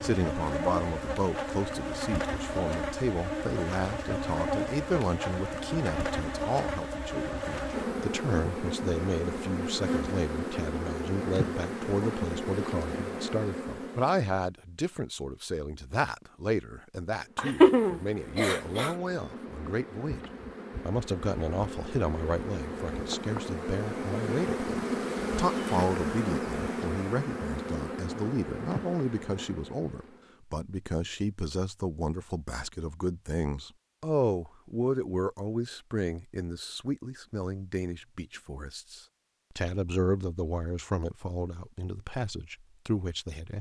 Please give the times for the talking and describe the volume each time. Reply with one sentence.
You can hear the talking from 0.0 to 20.2 s, at a steady volume; and from 20.9 to 43.5 s, at a steady volume.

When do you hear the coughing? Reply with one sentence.
You can hear the coughing from 17.4 to 18.9 s.